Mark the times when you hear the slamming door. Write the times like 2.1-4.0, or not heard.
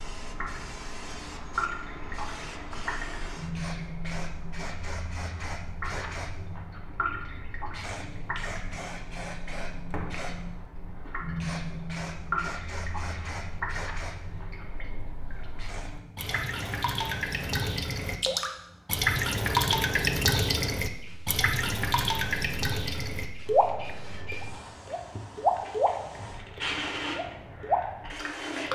9.9-10.3.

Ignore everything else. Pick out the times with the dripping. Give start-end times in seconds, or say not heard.
0.0-28.7.